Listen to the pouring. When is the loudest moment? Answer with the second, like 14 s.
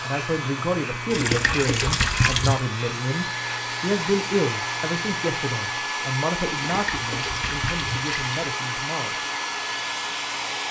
2 s.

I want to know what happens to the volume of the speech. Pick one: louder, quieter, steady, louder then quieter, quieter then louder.
quieter.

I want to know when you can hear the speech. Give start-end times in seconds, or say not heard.
0.0-9.2.